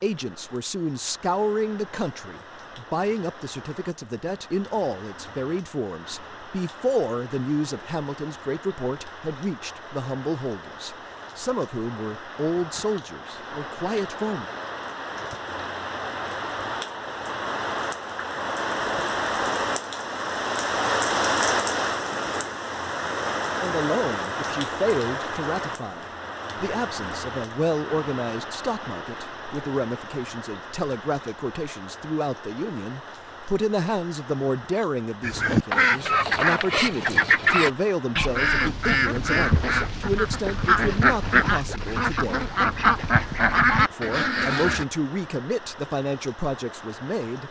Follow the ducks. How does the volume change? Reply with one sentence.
The volume of the ducks stays about the same.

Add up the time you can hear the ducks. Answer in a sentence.
The ducks can be heard for 10 seconds in total.